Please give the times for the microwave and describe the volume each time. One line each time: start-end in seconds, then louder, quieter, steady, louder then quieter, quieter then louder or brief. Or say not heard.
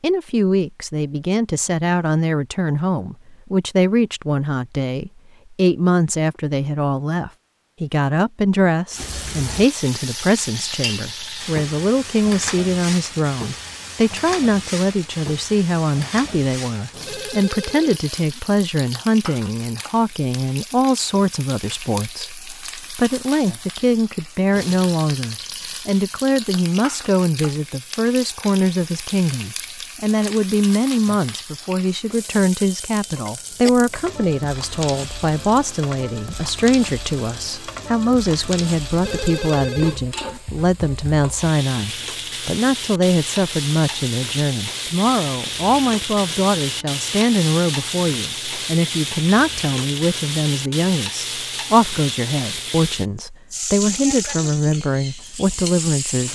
not heard.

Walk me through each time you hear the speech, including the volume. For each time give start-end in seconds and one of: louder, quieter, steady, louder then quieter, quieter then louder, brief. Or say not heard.
0.0-56.3 steady.